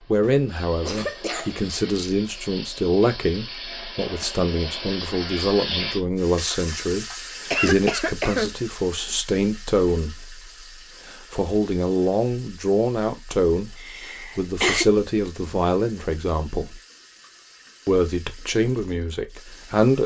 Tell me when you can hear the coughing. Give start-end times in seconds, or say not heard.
0.2-1.6, 7.5-8.6, 13.8-14.8.